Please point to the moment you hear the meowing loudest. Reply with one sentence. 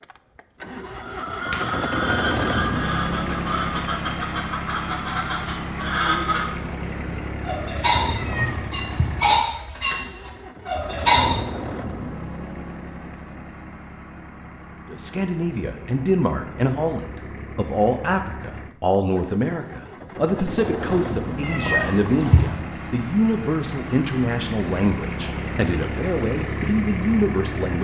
The volume of the meowing peaks at 22 seconds.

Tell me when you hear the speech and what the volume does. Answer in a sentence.
The speech can be heard from 14.9 to 27.7 s, at a steady volume.